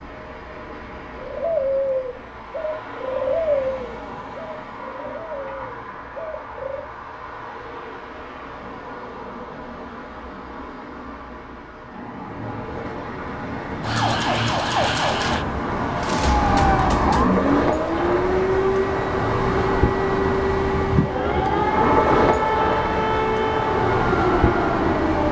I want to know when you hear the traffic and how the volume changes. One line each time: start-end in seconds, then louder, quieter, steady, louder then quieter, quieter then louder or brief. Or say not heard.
0.0-25.2 louder.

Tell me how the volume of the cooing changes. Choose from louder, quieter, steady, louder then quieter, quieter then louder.
quieter.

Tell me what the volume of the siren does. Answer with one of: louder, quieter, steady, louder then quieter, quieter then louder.
steady.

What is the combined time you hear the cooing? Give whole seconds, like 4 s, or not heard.
6 s.